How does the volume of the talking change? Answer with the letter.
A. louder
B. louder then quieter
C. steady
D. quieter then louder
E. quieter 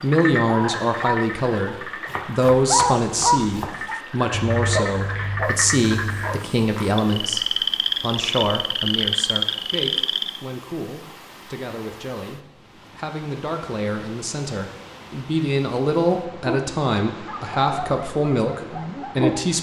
D.